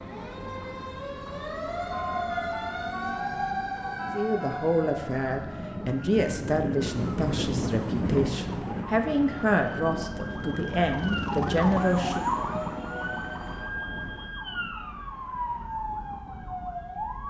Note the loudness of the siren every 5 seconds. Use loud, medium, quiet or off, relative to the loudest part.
loud, medium, loud, loud.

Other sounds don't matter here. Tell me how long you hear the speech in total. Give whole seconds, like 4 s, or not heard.
8 s.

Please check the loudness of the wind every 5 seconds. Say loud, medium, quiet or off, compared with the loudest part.
quiet, loud, medium, quiet.